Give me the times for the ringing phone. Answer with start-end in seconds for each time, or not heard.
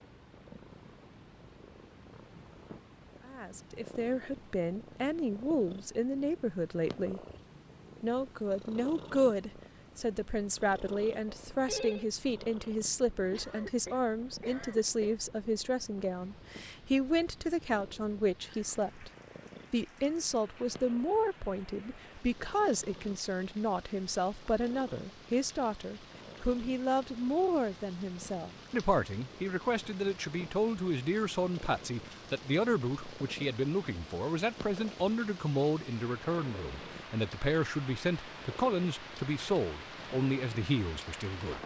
11.2-12.1.